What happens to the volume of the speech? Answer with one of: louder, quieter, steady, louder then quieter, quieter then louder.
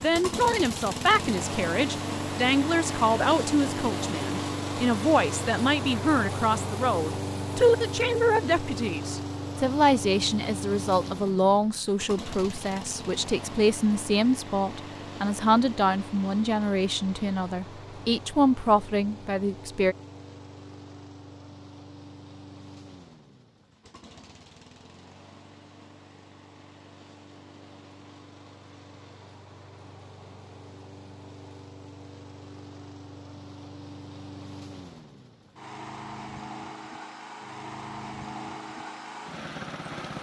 steady.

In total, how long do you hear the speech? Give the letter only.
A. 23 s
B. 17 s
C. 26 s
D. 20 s
D.